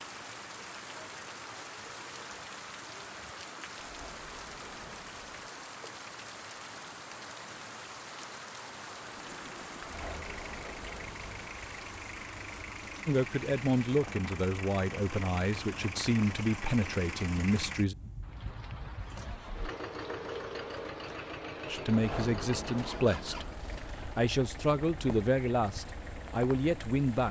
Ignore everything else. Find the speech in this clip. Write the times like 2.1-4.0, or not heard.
13.1-17.9, 21.6-27.2.